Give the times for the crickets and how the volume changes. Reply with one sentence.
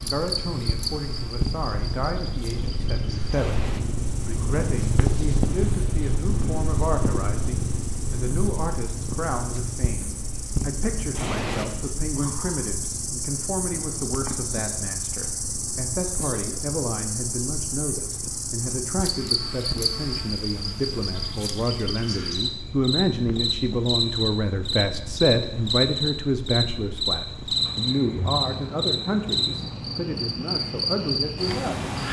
You can hear the crickets from 0.0 to 32.0 s, getting louder.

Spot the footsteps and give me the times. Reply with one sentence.
The footsteps can't be heard in this clip.